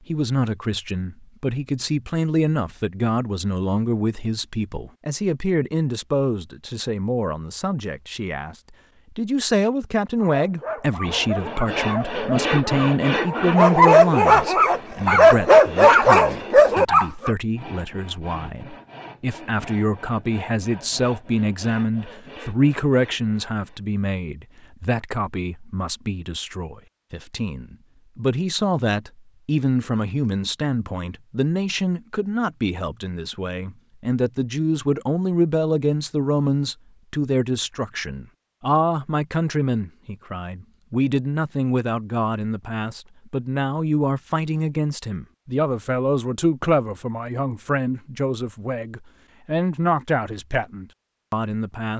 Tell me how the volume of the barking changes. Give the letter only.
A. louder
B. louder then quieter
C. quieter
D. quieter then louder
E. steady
A.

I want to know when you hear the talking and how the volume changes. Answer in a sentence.
The talking can be heard from 0.1 to 51.9 s, at a steady volume.